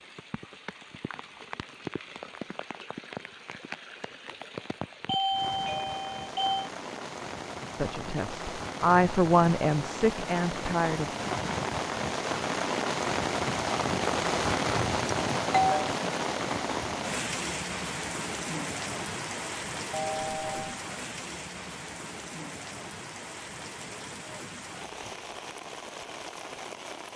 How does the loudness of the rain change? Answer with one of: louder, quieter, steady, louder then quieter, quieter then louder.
louder then quieter.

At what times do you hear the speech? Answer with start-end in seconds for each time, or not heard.
7.8-11.1.